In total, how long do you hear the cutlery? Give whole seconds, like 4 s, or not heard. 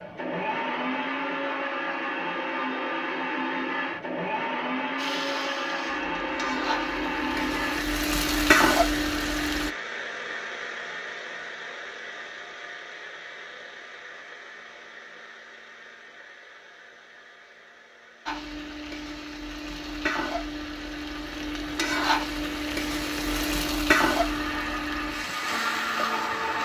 not heard.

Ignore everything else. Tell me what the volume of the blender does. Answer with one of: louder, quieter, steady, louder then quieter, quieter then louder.
quieter then louder.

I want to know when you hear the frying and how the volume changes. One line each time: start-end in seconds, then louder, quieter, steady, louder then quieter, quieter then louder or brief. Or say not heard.
5.0-9.7 louder
18.2-26.6 louder then quieter.